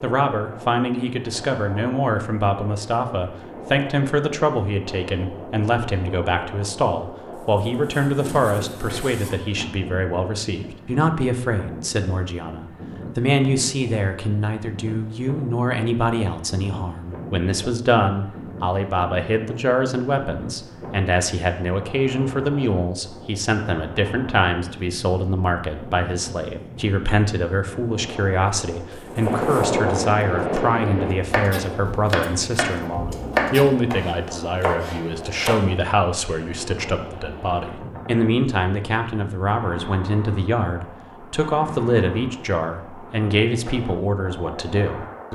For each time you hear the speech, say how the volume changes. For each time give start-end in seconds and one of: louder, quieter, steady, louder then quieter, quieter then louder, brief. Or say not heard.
0.0-45.3 steady.